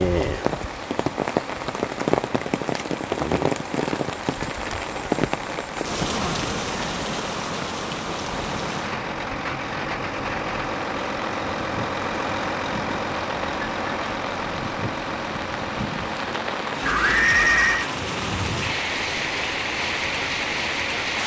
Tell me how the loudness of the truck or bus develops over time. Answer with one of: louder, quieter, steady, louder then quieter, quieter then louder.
louder then quieter.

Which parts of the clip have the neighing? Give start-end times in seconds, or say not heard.
16.8-17.9.